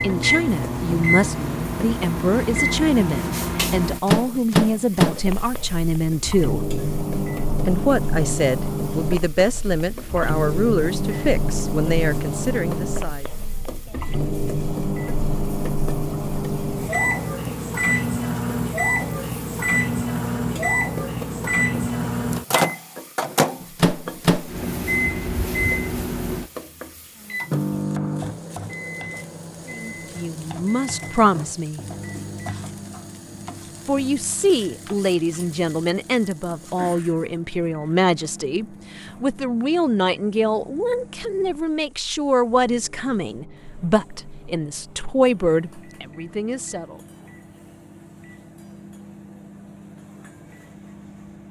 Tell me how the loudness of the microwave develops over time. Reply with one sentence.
The loudness of the microwave goes down.